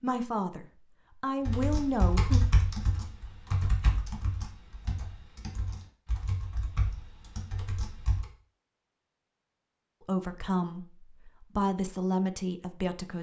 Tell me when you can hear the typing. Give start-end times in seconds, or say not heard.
1.4-8.2.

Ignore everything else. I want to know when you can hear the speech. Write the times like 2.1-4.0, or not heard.
0.0-2.4, 10.0-13.1.